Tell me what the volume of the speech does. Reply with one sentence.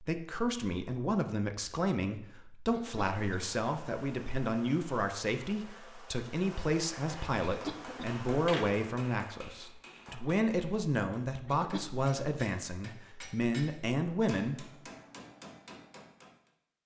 The loudness of the speech stays about the same.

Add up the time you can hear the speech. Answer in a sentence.
You can hear the speech for 15 seconds altogether.